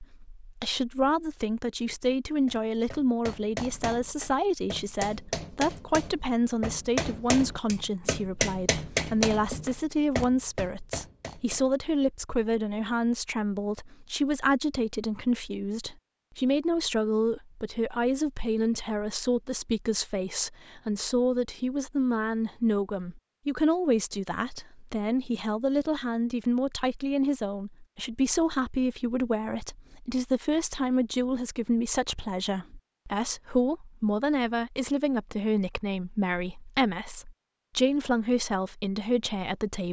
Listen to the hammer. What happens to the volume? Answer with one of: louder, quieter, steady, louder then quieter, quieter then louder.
louder then quieter.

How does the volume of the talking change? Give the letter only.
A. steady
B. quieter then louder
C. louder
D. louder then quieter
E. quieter
A.